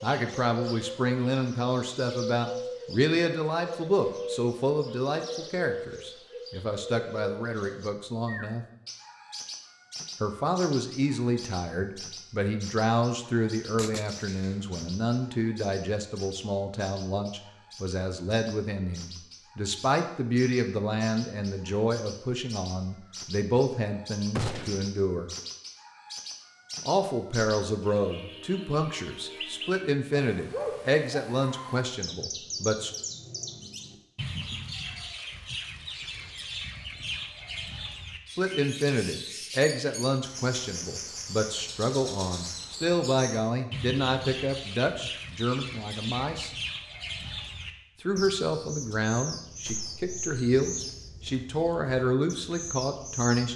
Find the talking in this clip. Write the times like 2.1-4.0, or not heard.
0.0-8.7, 10.2-25.3, 26.9-32.9, 38.4-46.5, 48.0-53.5.